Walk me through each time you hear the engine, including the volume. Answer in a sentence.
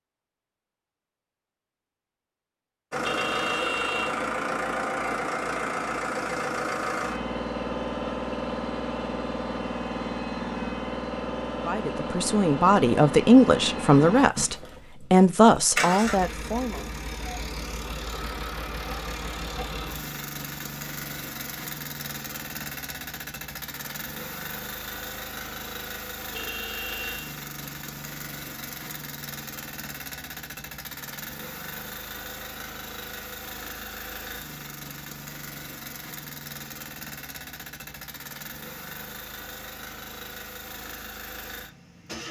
You can hear the engine from 2.9 to 42.2 s, getting quieter.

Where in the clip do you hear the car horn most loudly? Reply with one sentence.
The loudest moment of the car horn is at 4 seconds.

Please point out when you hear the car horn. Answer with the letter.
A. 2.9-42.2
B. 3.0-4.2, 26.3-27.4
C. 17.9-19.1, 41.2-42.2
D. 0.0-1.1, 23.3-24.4
B.